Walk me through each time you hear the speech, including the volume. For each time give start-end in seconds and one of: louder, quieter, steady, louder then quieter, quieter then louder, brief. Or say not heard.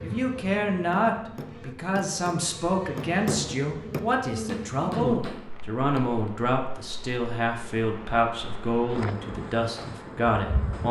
0.0-10.8 steady.